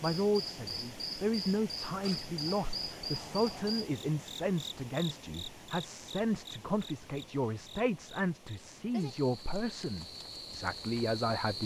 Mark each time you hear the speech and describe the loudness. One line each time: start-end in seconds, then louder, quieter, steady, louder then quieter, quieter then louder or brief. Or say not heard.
0.0-11.6 steady.